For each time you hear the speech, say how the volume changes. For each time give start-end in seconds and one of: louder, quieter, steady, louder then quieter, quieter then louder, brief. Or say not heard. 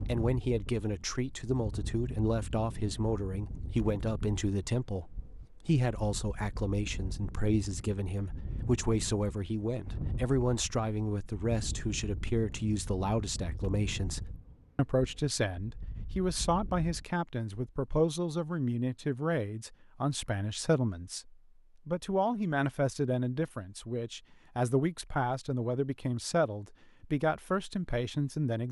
0.1-28.6 steady.